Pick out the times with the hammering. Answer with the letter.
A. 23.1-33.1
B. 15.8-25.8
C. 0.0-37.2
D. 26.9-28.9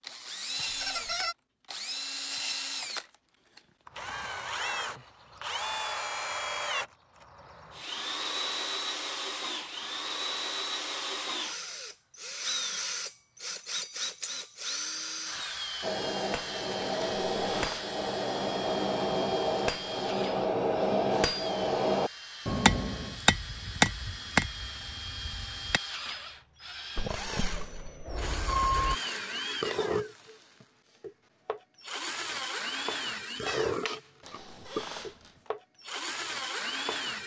B.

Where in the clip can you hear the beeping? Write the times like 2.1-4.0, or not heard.
26.9-28.9.